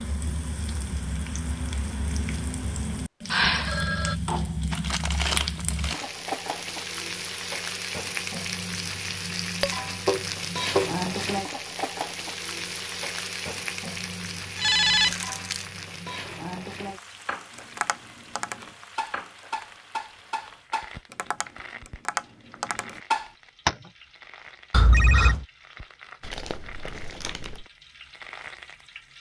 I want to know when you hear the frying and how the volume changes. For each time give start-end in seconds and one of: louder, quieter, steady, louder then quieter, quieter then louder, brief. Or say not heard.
0.0-29.1 quieter.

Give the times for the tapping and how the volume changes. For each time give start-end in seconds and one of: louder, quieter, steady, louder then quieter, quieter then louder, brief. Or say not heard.
9.6-10.9 brief
17.6-23.9 louder.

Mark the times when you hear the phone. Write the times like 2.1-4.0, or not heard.
3.3-4.2, 14.6-15.2, 24.7-25.4.